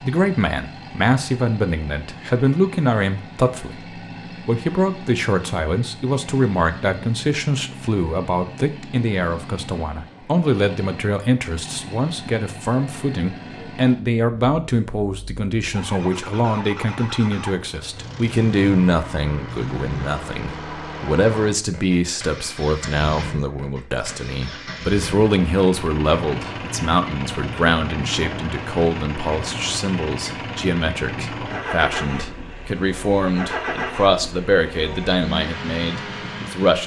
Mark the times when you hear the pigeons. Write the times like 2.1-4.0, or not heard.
not heard.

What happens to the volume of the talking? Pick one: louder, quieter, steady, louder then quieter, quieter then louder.
steady.